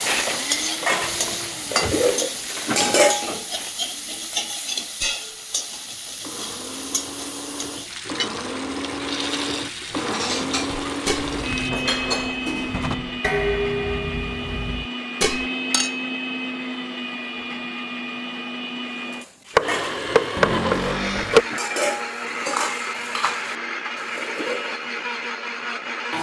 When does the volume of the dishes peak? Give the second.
3 s.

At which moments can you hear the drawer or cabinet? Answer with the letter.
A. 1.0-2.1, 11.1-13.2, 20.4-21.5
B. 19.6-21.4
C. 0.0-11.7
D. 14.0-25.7
A.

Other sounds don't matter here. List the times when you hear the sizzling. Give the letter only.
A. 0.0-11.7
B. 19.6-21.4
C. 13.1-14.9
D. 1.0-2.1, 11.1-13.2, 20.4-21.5
A.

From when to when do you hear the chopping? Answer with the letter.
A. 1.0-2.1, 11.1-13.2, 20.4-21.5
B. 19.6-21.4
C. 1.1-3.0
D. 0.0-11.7
B.